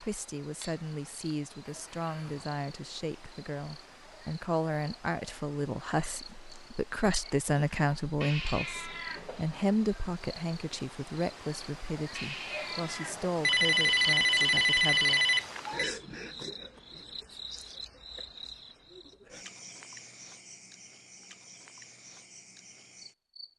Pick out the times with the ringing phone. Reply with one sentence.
The ringing phone can be heard from 1.6 to 2.5 s and from 13.4 to 15.9 s.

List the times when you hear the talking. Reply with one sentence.
The talking can be heard from 0.0 to 15.2 s.